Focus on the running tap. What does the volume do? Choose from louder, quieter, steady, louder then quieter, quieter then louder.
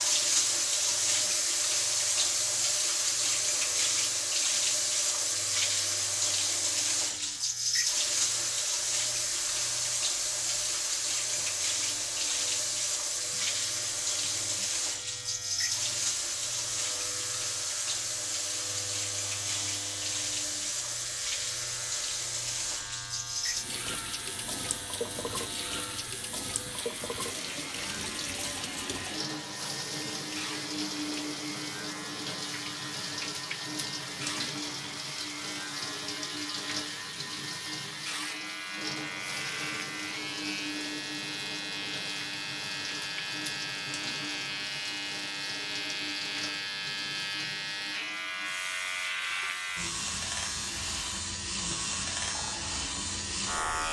quieter.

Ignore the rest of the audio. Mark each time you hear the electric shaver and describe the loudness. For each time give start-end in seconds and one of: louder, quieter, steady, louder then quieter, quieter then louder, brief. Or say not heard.
0.0-53.8 louder.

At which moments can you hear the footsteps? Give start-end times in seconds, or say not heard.
not heard.